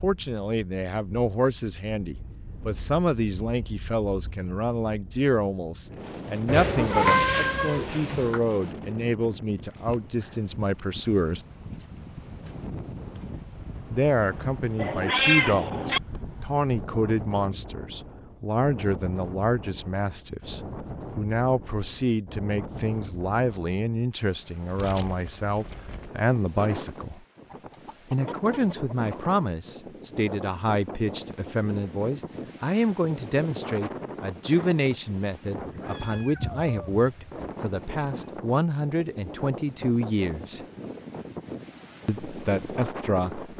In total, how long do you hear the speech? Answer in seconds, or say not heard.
39 s.